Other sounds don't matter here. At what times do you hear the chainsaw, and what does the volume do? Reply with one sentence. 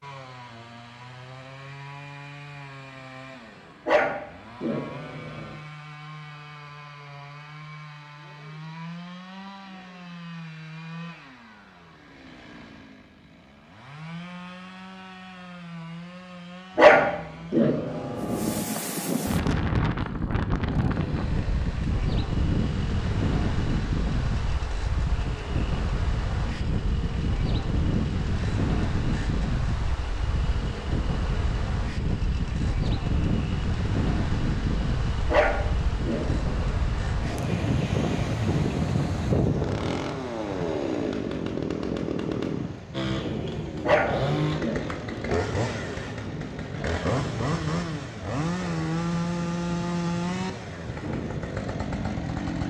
The chainsaw can be heard from 0.0 to 52.6 s, getting louder.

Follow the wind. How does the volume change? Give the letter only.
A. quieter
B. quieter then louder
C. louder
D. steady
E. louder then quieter
A.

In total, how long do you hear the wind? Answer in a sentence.
You can hear the wind for 34 seconds altogether.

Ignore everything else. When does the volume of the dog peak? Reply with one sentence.
The volume of the dog peaks at 17 seconds.